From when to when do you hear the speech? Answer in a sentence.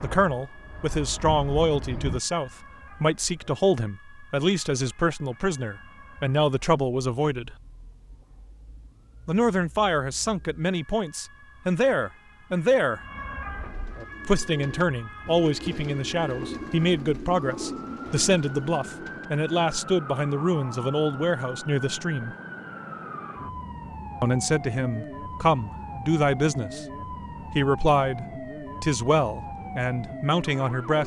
The speech can be heard from 0.0 to 7.5 s, from 9.2 to 13.0 s, from 14.2 to 22.4 s, from 24.2 to 26.9 s and from 27.5 to 31.0 s.